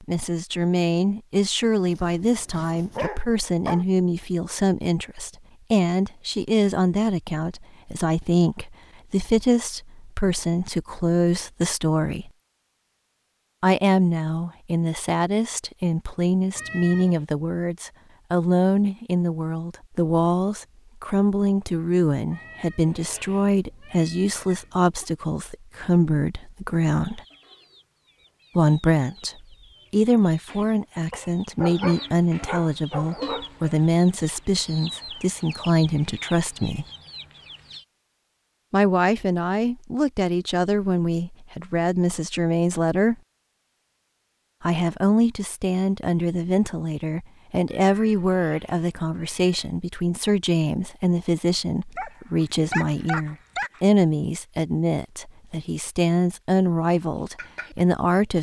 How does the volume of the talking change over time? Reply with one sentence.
The loudness of the talking stays about the same.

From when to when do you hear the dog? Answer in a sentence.
You can hear the dog from 1.9 to 3.9 s, from 31.1 to 33.5 s and from 52.0 to 53.8 s.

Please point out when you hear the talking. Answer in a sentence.
The talking can be heard from 0.0 to 12.3 s, from 13.6 to 27.2 s, from 28.6 to 36.9 s, from 38.7 to 43.1 s and from 44.6 to 58.3 s.